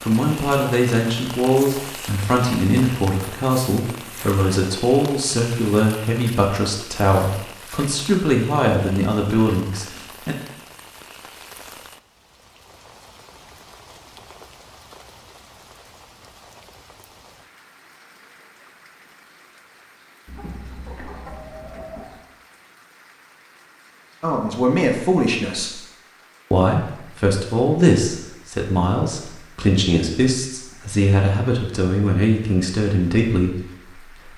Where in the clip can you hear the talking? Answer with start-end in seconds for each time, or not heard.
0.1-10.3, 24.2-25.8, 26.5-34.2.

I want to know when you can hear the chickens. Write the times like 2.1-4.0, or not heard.
20.2-22.2.